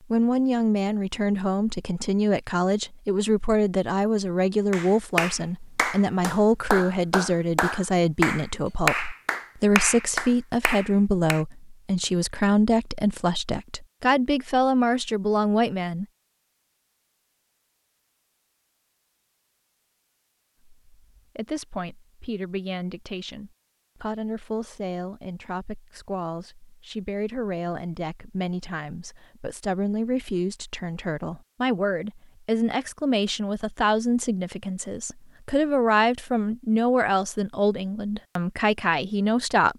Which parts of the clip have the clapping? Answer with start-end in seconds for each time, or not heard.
4.7-11.4.